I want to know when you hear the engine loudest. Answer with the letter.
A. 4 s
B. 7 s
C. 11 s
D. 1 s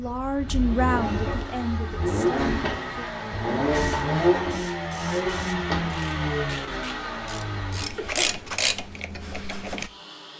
A.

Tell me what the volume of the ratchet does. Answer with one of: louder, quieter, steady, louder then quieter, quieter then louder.
louder.